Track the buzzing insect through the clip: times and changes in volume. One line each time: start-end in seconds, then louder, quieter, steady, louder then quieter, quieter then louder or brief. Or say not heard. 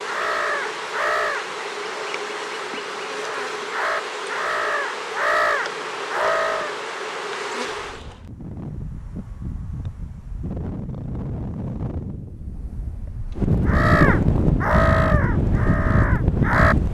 0.0-8.2 steady.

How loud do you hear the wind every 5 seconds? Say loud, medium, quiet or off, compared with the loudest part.
off, quiet, loud, loud.